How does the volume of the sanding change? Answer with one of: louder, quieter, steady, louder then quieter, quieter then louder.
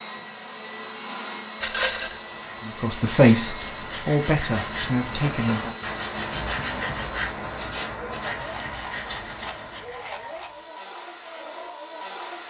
louder then quieter.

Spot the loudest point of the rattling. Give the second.
2 s.